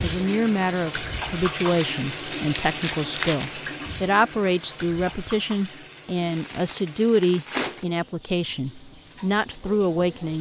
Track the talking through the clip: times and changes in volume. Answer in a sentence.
The talking can be heard from 0.0 to 10.3 s, at a steady volume.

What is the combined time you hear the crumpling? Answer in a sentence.
The crumpling can be heard for 3 seconds in total.